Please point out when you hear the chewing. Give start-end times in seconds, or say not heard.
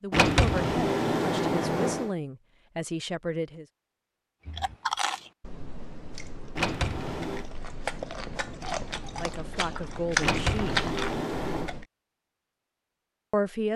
4.5-11.8.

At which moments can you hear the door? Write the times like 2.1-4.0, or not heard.
0.1-2.1, 6.5-7.5, 10.2-11.7.